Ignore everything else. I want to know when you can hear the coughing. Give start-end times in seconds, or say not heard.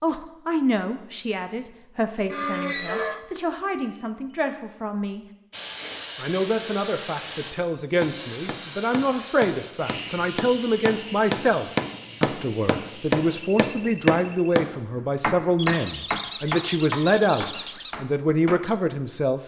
not heard.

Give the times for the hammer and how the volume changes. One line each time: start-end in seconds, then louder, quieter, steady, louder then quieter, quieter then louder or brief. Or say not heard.
8.0-18.6 louder then quieter.